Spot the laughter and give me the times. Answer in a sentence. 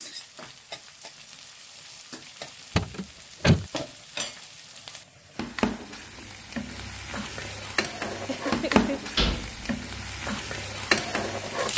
The laughter can be heard from 8.2 to 9.2 s.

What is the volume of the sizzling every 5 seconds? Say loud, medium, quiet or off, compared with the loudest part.
quiet, loud, loud.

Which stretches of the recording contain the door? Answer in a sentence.
The door can be heard from 2.8 to 3.7 s and from 9.2 to 9.7 s.